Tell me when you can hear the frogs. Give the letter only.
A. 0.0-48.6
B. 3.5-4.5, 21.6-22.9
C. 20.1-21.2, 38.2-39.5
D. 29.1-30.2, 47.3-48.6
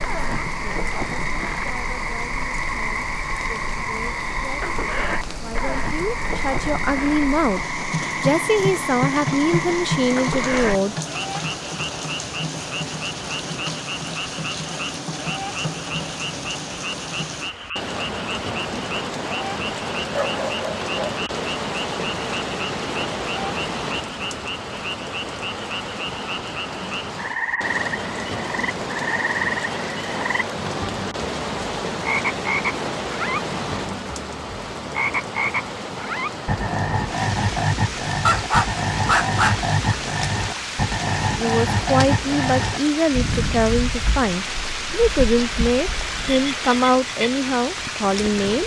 A.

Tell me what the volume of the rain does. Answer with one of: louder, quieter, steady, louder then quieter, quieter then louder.
steady.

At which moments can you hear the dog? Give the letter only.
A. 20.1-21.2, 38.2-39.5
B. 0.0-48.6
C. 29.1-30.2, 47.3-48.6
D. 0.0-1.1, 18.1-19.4
A.